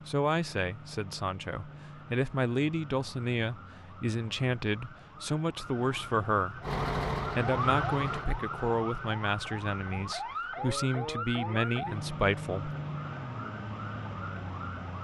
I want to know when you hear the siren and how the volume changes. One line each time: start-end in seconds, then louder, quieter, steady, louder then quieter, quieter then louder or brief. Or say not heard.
0.0-14.9 louder.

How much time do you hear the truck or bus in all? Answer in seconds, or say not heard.
2 s.